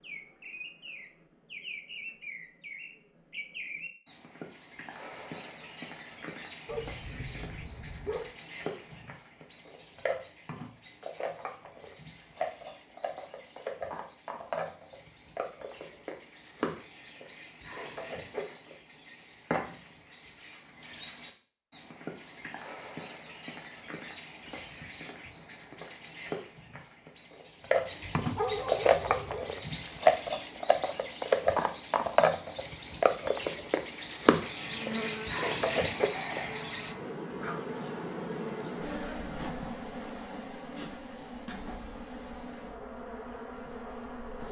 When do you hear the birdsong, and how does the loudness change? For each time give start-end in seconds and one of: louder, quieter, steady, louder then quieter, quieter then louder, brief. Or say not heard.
0.0-37.0 louder.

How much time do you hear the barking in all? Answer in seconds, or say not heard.
3 s.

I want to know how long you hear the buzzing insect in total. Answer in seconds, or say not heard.
10 s.